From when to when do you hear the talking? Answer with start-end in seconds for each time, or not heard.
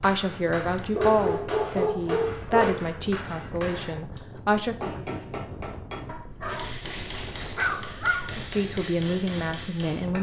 0.0-4.8, 8.3-10.1.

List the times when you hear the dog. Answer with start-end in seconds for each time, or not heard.
0.9-2.8, 6.0-8.4.